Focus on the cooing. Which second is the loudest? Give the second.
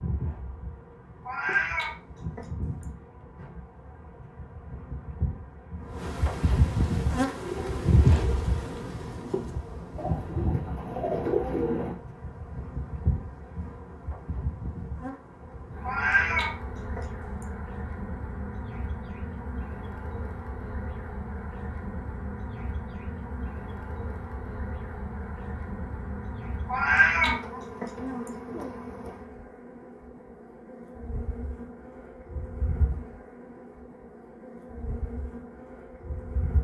11 s.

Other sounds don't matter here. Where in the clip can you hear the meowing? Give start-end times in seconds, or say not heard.
1.2-2.9, 15.8-17.4, 26.6-28.3.